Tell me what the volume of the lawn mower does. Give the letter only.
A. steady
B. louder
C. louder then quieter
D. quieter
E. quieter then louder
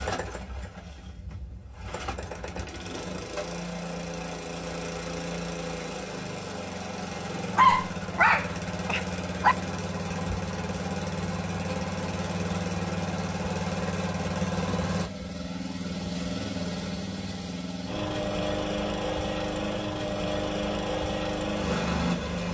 B.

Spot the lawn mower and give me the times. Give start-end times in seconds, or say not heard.
0.0-22.4.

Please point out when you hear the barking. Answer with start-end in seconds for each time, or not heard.
7.5-9.6.